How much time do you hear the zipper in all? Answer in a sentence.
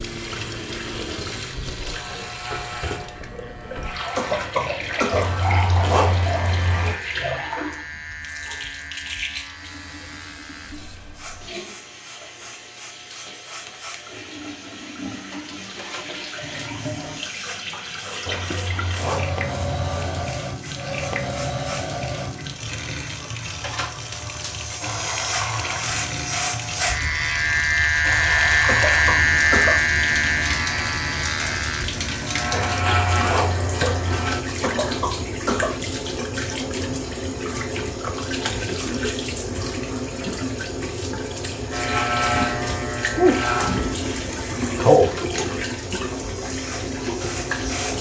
You can hear the zipper for 6 seconds altogether.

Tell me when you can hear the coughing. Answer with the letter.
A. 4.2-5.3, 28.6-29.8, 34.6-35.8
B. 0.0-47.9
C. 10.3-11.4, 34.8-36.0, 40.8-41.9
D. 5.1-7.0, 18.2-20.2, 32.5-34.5
A.